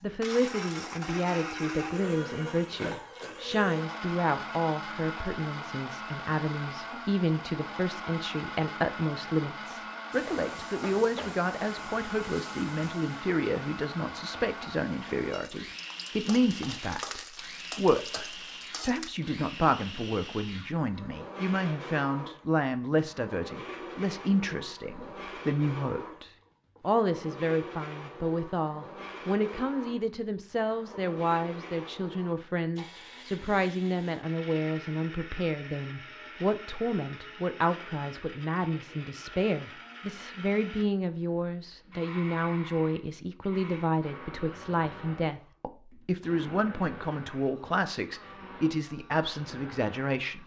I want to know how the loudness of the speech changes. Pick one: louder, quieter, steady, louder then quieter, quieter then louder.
steady.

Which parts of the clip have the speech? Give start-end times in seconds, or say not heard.
0.0-50.4.